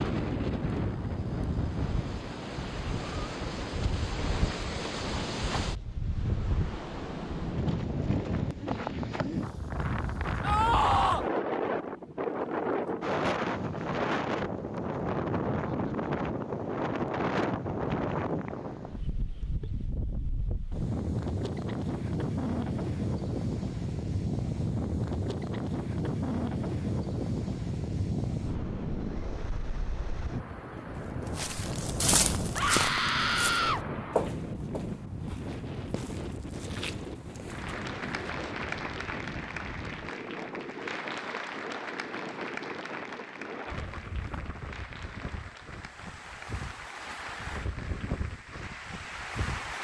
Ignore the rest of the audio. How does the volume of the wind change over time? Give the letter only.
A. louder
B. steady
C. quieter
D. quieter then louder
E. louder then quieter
C.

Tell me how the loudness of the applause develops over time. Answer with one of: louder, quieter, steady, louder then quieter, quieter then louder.
quieter.